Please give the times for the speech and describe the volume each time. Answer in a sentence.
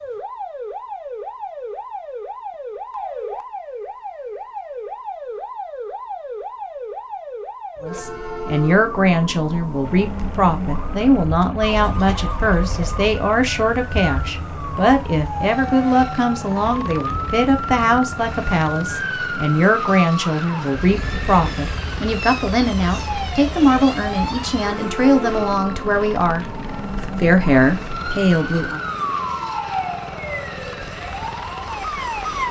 You can hear the speech from 7.8 to 28.8 s, at a steady volume.